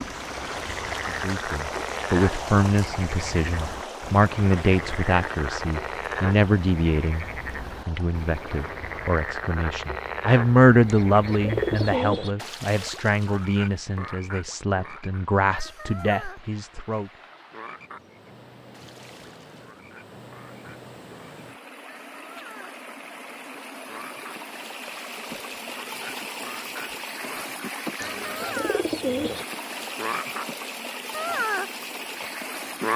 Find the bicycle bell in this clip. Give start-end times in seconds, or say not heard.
not heard.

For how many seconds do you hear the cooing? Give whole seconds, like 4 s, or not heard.
3 s.